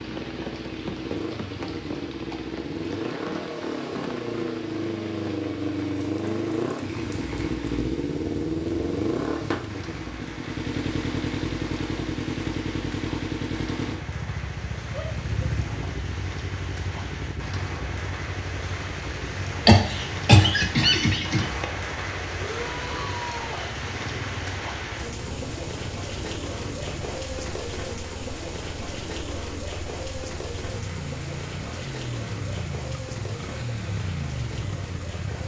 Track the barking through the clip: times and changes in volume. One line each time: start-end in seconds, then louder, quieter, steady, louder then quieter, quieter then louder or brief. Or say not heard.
not heard.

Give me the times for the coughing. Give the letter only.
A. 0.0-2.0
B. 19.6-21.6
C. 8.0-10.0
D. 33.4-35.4
B.